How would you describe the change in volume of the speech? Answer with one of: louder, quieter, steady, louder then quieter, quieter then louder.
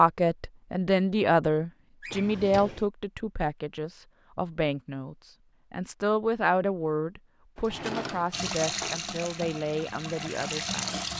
quieter.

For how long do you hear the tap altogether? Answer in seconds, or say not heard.
3 s.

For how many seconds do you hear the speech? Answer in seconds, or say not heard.
11 s.